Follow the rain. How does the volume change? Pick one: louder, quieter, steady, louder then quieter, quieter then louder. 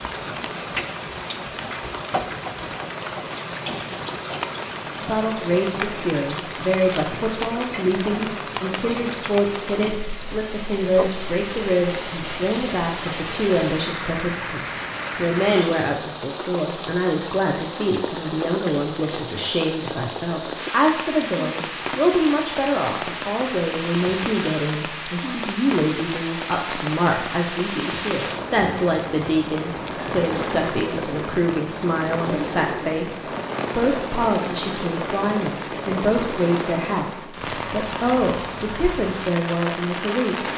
steady.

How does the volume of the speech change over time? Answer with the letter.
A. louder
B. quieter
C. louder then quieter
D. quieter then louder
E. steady
E.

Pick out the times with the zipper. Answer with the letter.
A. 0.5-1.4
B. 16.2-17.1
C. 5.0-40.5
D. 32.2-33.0
D.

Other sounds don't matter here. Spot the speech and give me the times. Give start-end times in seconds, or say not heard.
5.0-40.5.